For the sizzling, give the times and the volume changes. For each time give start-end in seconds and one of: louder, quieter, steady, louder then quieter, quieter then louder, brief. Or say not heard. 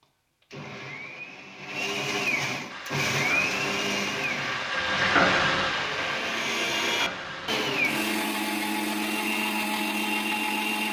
2.6-8.2 louder then quieter.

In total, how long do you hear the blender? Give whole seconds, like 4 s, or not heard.
11 s.